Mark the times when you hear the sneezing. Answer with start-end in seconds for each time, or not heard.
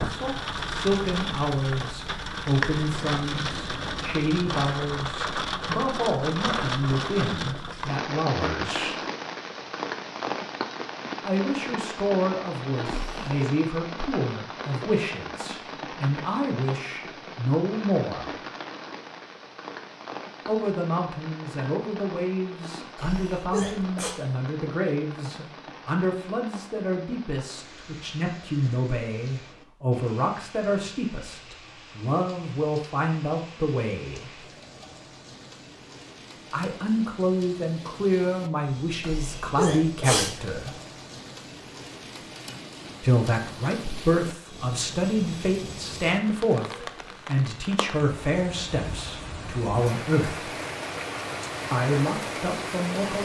12.8-13.4, 22.9-24.1, 39.0-40.3.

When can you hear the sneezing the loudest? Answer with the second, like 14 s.
40 s.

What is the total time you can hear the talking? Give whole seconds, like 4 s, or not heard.
43 s.